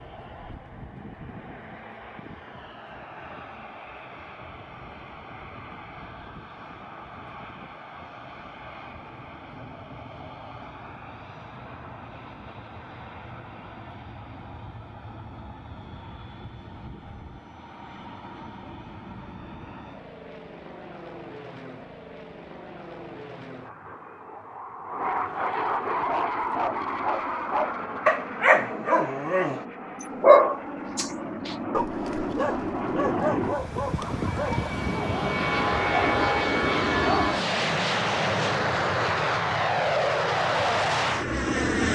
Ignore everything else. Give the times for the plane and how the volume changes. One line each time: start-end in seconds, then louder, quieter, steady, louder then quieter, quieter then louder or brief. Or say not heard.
0.0-41.9 louder.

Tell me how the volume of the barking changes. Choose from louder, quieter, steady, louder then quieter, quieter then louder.
louder then quieter.